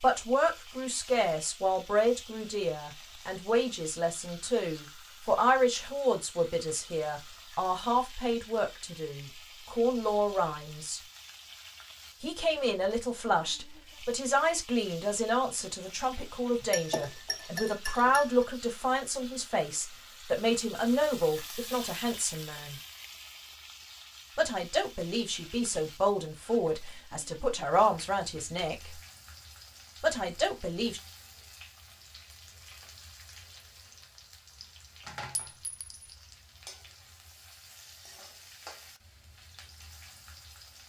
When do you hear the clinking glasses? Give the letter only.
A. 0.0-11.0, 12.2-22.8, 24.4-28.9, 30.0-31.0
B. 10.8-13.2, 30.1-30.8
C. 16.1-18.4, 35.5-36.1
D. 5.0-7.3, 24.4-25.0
C.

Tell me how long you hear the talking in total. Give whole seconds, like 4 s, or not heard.
27 s.